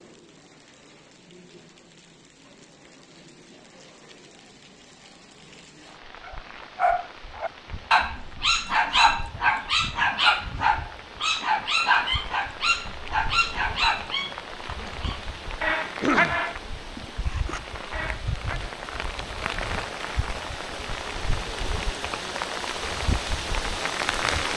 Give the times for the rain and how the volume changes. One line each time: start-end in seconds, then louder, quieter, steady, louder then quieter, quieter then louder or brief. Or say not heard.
0.0-24.5 louder.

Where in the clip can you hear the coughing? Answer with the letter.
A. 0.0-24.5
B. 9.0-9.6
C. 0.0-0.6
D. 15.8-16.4
D.